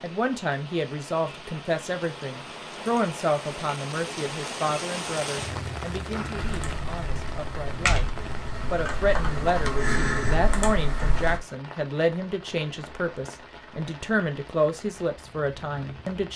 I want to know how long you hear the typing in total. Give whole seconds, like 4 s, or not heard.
5 s.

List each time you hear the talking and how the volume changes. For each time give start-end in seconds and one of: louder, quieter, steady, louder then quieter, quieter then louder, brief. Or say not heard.
0.0-8.1 quieter
8.7-16.3 steady.